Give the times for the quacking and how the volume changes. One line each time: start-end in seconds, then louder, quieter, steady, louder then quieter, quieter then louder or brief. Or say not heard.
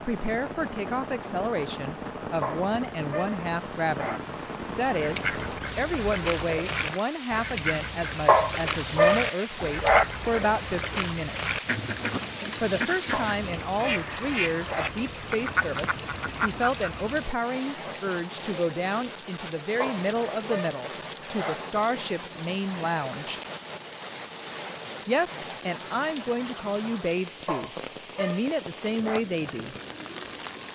4.9-16.9 steady.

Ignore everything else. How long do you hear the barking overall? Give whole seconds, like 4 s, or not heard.
9 s.